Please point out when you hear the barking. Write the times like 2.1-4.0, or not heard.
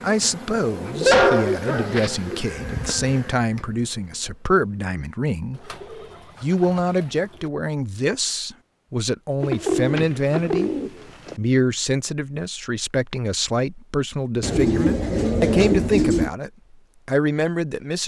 1.1-2.2.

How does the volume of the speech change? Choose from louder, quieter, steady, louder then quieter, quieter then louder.
steady.